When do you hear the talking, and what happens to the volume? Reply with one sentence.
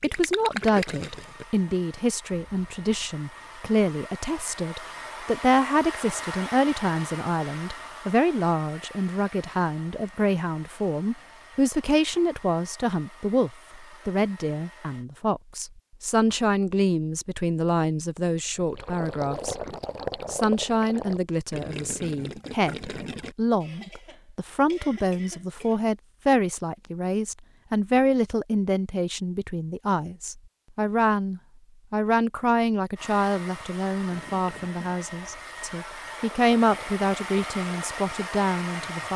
You can hear the talking from 0.0 to 19.6 s, at a steady volume; and from 20.2 to 39.1 s, at a steady volume.